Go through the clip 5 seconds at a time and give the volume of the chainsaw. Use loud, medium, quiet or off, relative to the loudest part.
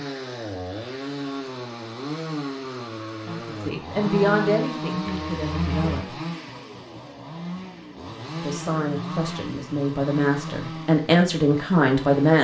loud, loud, medium.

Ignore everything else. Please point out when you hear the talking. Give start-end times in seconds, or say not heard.
3.2-6.2, 8.4-12.3.